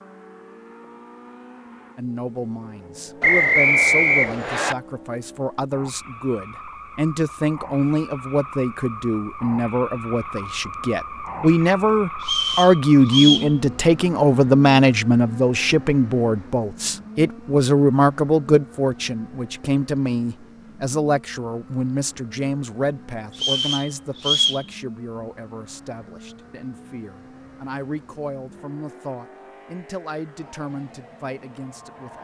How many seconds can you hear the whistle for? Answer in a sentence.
You can hear the whistle for 4 seconds altogether.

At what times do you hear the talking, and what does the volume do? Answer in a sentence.
The talking can be heard from 1.9 to 32.1 s, getting louder then quieter.